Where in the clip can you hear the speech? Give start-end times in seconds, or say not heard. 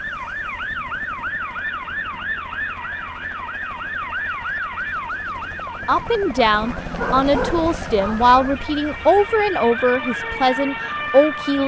5.8-11.6.